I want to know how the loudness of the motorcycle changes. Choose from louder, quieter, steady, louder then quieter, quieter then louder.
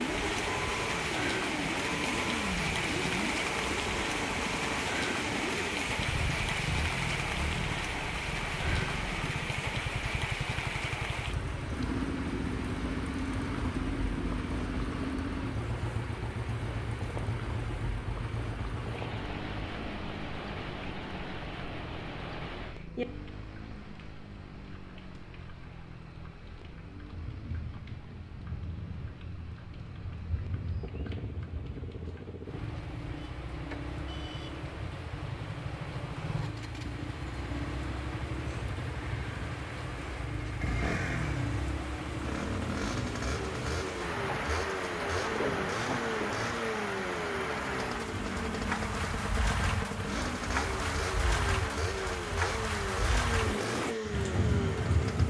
quieter then louder.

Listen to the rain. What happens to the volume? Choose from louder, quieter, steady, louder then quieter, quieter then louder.
quieter then louder.